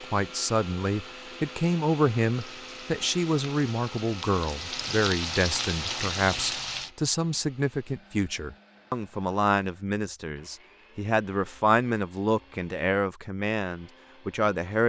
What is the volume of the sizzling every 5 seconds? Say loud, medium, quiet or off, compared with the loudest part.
medium, loud, off.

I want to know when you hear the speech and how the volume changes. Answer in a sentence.
You can hear the speech from 0.0 to 14.8 s, at a steady volume.